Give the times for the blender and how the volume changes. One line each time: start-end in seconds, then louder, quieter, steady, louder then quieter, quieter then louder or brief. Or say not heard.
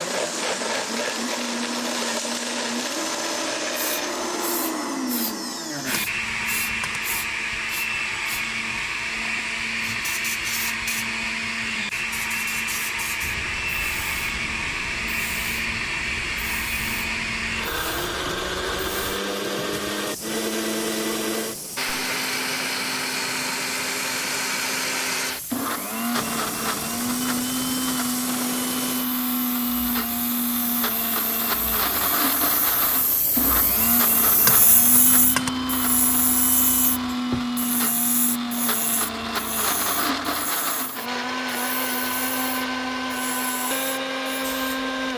0.0-45.1 steady.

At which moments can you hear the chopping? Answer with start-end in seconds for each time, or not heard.
5.9-7.0, 34.4-35.5.